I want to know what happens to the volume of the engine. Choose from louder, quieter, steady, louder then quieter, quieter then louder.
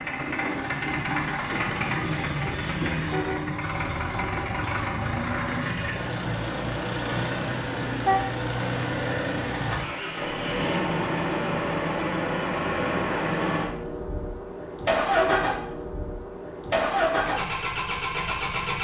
steady.